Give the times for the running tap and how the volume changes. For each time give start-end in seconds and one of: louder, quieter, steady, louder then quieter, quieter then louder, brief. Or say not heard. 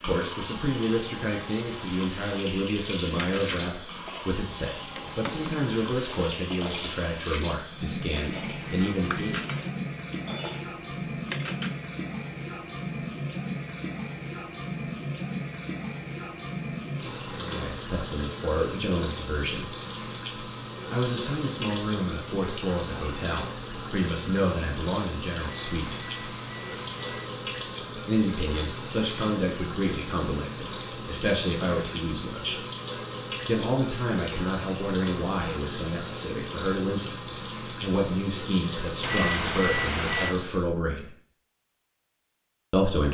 0.0-40.7 steady.